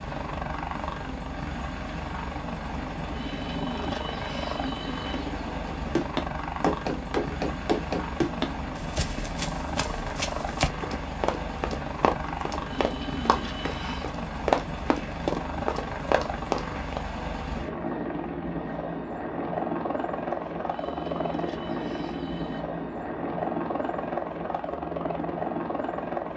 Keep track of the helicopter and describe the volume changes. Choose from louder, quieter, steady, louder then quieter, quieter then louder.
steady.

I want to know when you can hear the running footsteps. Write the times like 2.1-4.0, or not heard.
5.7-17.0.